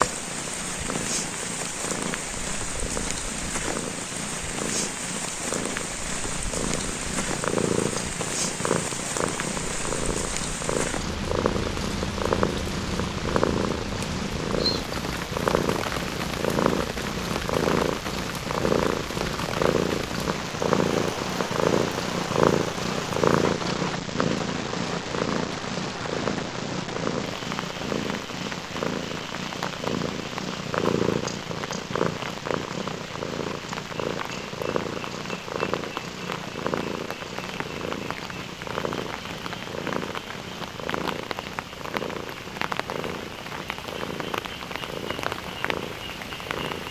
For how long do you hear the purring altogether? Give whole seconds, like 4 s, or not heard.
47 s.